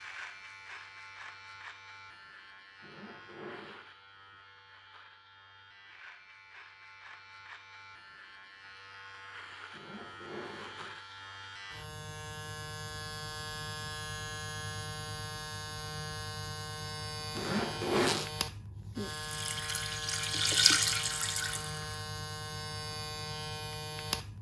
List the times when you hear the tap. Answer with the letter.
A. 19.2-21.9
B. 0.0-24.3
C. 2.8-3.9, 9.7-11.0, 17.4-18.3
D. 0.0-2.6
A.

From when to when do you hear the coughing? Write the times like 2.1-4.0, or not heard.
not heard.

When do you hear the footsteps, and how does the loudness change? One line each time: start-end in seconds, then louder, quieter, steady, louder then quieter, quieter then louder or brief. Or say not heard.
not heard.